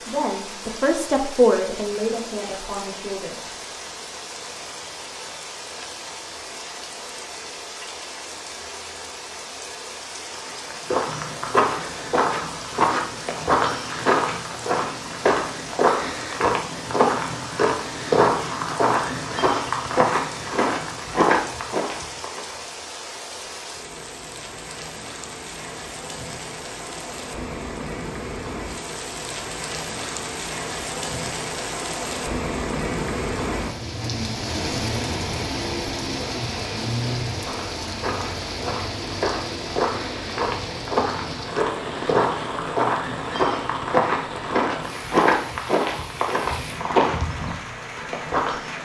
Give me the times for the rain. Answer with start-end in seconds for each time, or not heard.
0.0-48.7.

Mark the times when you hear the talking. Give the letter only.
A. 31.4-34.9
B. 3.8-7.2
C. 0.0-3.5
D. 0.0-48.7
C.